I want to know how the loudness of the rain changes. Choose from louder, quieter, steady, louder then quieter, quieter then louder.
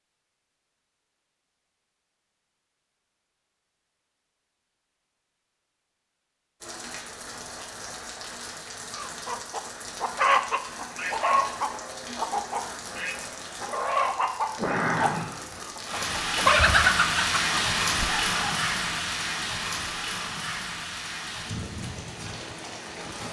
louder then quieter.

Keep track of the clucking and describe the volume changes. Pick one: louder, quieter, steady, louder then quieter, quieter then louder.
quieter then louder.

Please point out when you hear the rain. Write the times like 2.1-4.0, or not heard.
6.6-23.2.